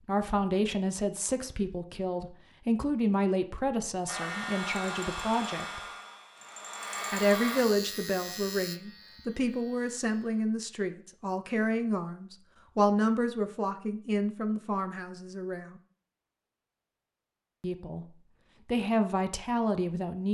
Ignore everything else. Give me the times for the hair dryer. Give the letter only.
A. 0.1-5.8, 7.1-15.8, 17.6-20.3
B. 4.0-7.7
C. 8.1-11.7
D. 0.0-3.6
B.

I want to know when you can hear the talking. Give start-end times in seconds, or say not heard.
0.1-5.8, 7.1-15.8, 17.6-20.3.